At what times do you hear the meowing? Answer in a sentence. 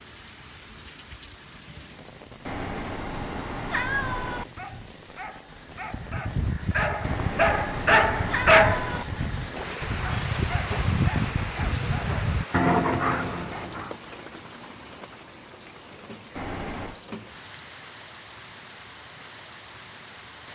You can hear the meowing from 2.5 to 4.5 s, from 7.0 to 9.1 s and from 16.4 to 17.0 s.